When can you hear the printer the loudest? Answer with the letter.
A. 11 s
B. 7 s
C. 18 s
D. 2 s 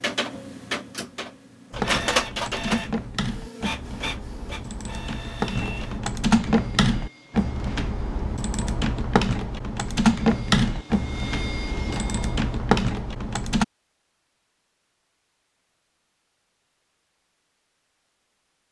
D.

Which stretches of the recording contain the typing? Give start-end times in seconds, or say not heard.
1.7-13.7.